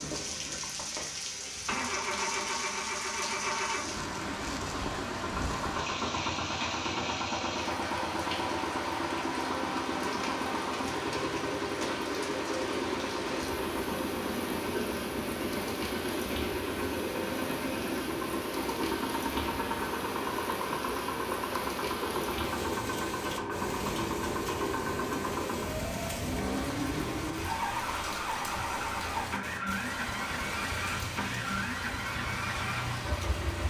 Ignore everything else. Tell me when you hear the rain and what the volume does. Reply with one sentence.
The rain can be heard from 0.0 to 33.6 s, at a steady volume.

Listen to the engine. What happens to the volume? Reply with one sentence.
The loudness of the engine stays about the same.